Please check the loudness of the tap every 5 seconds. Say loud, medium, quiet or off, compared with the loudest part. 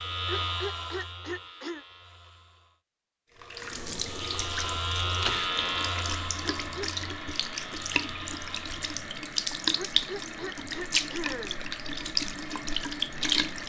medium, loud, loud.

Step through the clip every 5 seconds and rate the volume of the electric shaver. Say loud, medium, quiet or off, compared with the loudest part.
loud, loud, off.